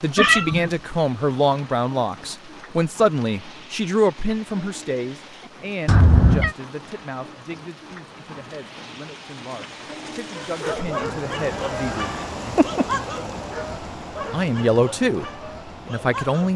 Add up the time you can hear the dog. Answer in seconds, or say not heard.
6 s.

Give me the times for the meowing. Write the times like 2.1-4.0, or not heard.
0.1-0.7, 5.8-6.5, 11.5-12.8.